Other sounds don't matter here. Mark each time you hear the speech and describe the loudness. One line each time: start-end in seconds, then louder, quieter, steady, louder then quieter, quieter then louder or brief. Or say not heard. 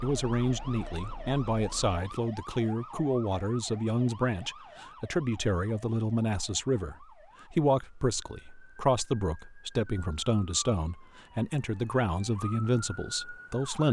0.0-13.8 steady.